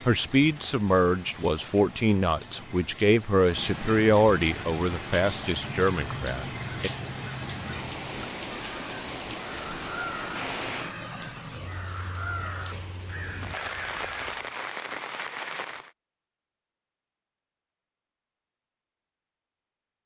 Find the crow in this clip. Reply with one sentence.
You can hear the crow from 5.5 to 14.4 s.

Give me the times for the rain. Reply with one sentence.
You can hear the rain from 0.0 to 15.9 s.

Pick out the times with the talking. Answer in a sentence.
You can hear the talking from 0.1 to 6.9 s.